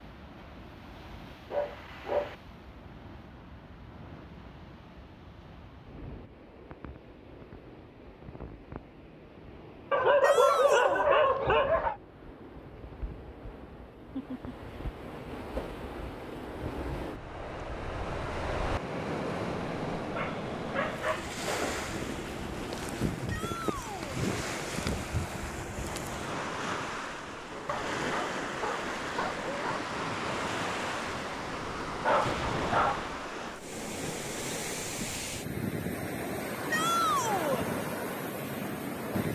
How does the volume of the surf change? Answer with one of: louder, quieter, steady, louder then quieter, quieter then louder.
louder.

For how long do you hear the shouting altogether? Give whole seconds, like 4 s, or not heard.
3 s.